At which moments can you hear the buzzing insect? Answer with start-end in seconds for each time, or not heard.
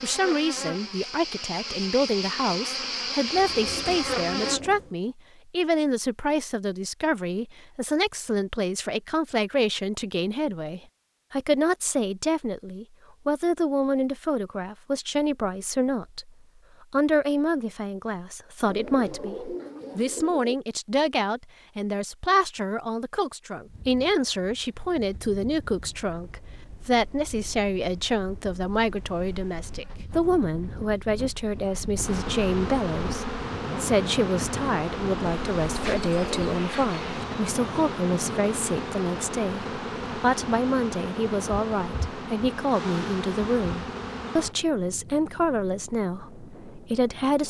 0.0-4.6, 32.0-44.5.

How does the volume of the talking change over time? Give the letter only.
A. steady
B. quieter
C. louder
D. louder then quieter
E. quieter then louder
A.